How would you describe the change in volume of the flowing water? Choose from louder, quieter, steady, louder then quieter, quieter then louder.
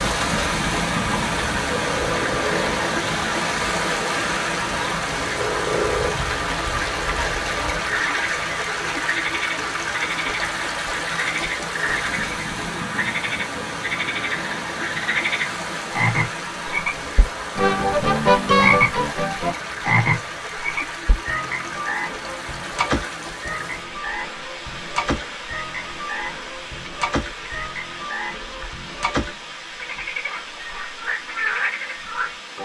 quieter.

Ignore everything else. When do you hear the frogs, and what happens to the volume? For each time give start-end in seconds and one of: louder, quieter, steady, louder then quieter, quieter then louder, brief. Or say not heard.
0.0-32.6 louder then quieter.